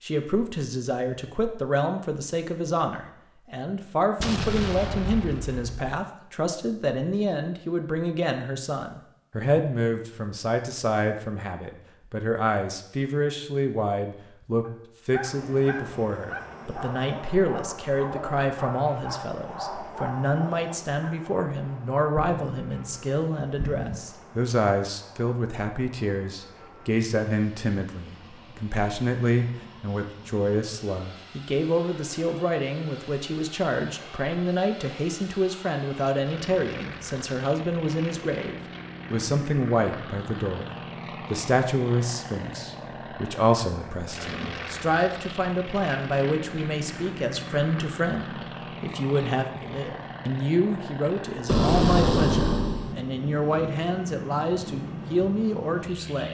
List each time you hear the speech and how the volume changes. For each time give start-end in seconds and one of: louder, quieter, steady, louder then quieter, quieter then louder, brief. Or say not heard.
0.0-56.3 steady.